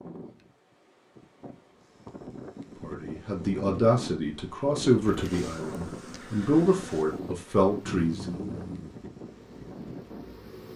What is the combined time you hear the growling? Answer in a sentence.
The growling can be heard for 2 seconds in total.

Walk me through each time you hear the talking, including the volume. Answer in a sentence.
You can hear the talking from 2.8 to 8.6 s, getting quieter then louder.